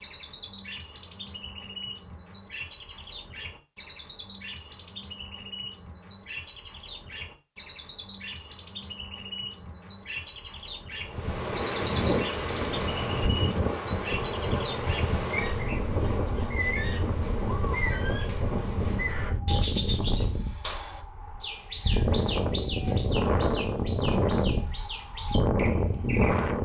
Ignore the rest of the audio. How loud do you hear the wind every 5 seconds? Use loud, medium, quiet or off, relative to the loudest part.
off, off, loud, medium, loud, loud.